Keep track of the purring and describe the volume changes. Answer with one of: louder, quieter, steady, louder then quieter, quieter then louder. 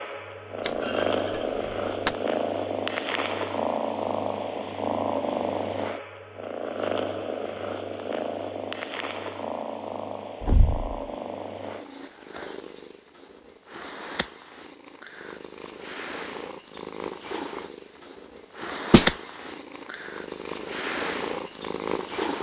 quieter then louder.